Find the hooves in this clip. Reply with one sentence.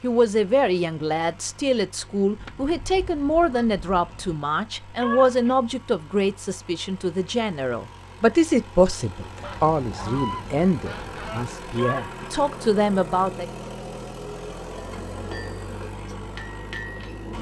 The hooves can't be heard in this clip.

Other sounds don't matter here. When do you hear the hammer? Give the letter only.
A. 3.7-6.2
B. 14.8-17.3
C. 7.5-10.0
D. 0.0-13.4
B.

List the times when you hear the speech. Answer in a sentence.
The speech can be heard from 0.0 to 13.4 s.